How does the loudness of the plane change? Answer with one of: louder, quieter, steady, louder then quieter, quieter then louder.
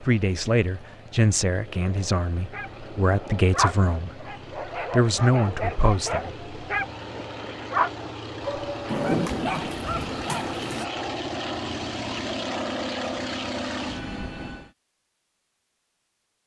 louder.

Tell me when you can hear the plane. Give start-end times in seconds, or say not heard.
0.0-14.7.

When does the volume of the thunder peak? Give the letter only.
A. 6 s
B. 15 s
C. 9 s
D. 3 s
C.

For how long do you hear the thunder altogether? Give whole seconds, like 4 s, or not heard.
2 s.